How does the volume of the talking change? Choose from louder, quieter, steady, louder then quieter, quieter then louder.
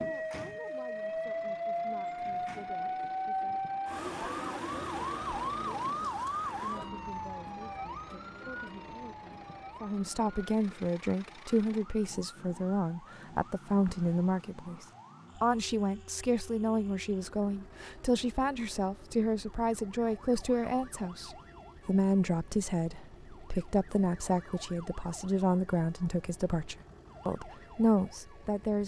louder.